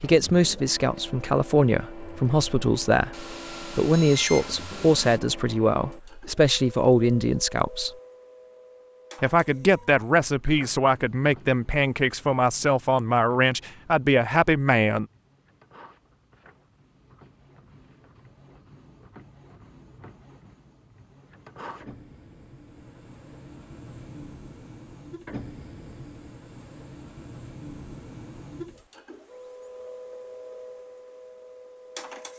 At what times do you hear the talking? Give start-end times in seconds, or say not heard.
0.0-7.9, 9.2-15.1.